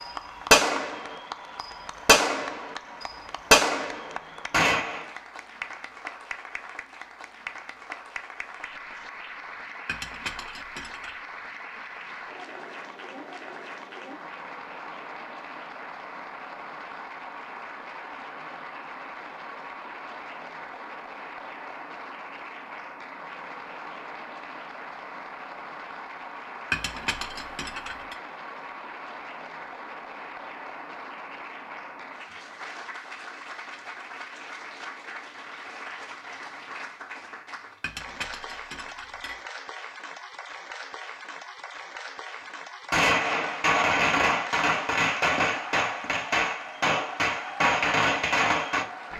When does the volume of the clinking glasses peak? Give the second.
27 s.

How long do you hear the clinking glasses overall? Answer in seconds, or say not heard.
4 s.